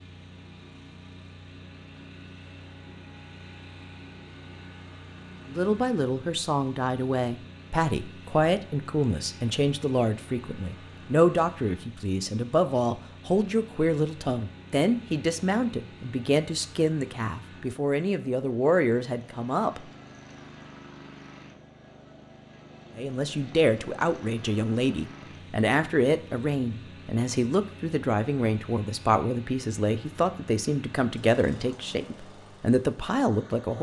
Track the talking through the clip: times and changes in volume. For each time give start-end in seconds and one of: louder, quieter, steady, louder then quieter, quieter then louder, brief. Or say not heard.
5.5-19.8 steady
22.9-33.7 steady.